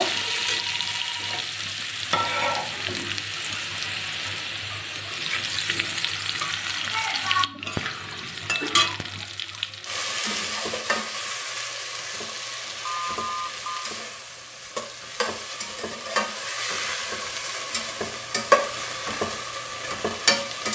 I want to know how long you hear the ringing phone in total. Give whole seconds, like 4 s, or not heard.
2 s.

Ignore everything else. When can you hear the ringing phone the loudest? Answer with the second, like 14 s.
13 s.